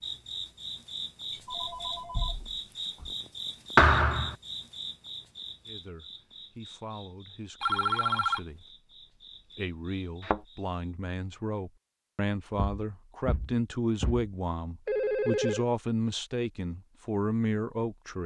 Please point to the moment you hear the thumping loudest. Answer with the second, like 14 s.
4 s.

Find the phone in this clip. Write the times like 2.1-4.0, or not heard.
1.4-3.1, 7.6-8.4, 14.8-15.7.